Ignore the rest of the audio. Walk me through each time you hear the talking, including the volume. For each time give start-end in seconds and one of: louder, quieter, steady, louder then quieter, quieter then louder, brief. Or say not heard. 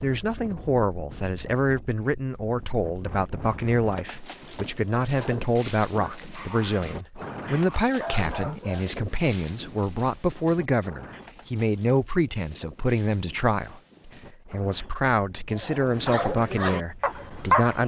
0.0-17.8 steady.